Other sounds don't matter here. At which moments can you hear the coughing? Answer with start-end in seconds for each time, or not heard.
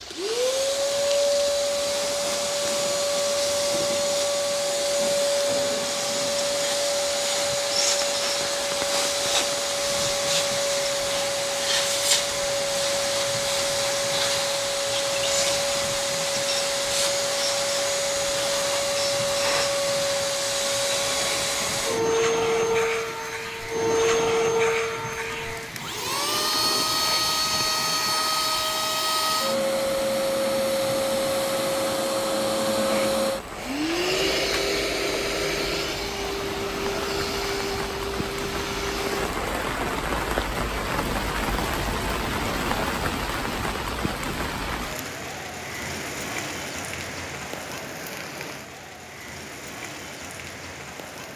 not heard.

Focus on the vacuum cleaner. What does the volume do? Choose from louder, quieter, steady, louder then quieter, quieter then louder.
steady.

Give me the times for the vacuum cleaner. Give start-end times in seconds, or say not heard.
0.0-39.3.